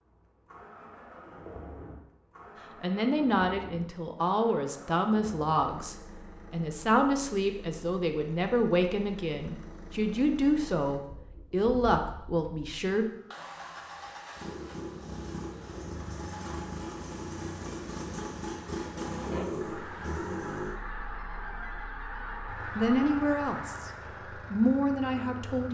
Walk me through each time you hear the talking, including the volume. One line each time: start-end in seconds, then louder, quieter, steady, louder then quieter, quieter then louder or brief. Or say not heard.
2.8-13.1 steady
22.8-25.6 brief.